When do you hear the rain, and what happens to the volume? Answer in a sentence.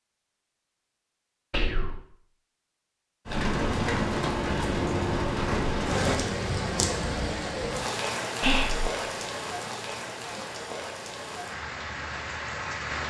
You can hear the rain from 3.2 to 13.0 s, getting quieter.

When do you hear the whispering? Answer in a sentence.
You can hear the whispering from 1.5 to 2.0 s and from 8.4 to 8.9 s.